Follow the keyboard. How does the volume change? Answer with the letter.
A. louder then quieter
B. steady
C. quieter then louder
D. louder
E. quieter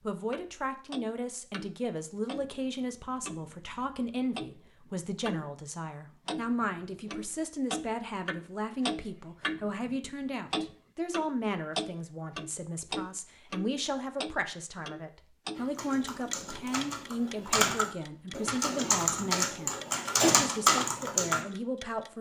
D.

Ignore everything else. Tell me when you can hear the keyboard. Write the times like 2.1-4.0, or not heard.
15.6-21.4.